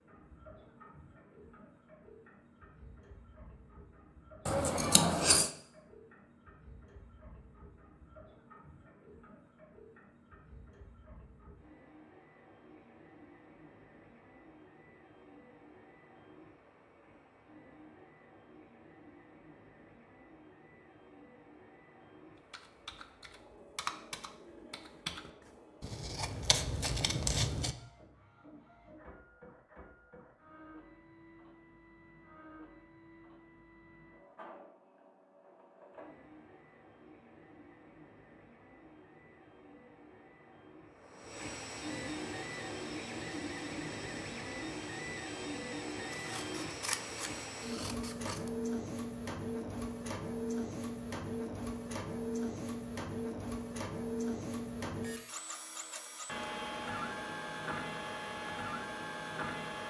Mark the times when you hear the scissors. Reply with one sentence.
The scissors can be heard from 4.5 to 5.5 s, from 25.8 to 27.8 s and from 46.1 to 48.5 s.